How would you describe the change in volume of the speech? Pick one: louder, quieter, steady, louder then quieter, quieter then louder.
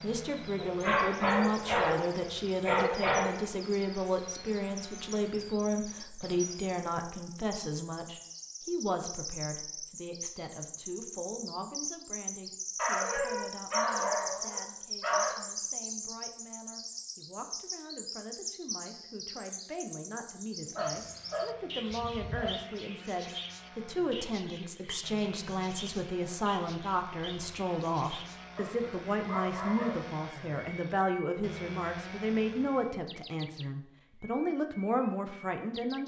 quieter then louder.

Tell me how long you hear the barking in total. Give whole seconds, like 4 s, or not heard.
9 s.